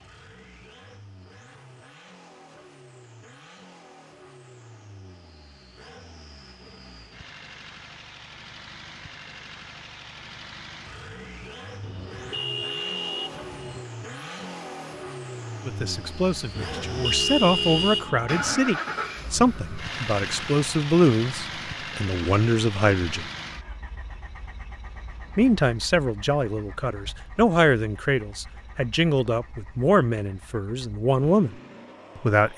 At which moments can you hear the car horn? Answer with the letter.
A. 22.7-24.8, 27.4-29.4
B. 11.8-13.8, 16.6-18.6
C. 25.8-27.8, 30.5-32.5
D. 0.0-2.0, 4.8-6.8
B.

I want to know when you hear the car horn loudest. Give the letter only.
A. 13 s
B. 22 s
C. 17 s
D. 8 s
C.